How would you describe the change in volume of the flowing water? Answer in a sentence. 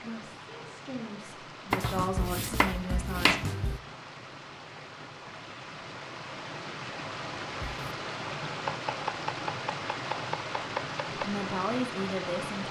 The volume of the flowing water goes up.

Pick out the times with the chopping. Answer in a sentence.
The chopping can be heard from 1.7 to 3.8 s and from 7.6 to 11.2 s.